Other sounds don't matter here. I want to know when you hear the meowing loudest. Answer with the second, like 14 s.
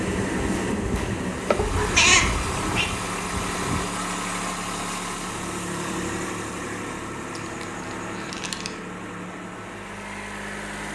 2 s.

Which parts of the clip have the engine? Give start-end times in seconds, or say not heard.
0.0-10.9.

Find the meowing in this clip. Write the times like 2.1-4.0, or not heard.
1.6-2.9, 7.3-8.8.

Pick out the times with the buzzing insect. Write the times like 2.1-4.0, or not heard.
0.0-3.9.